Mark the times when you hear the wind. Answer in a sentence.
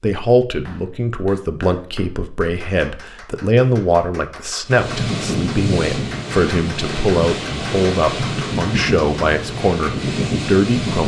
You can hear the wind from 4.7 to 11.0 s.